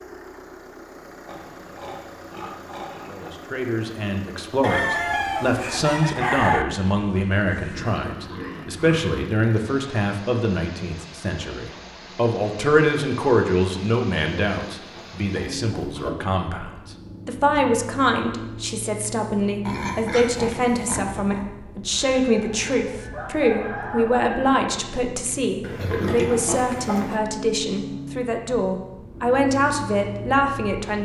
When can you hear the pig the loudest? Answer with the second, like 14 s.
26 s.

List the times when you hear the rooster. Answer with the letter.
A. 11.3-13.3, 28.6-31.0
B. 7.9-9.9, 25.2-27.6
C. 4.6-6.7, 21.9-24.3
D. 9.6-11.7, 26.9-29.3
C.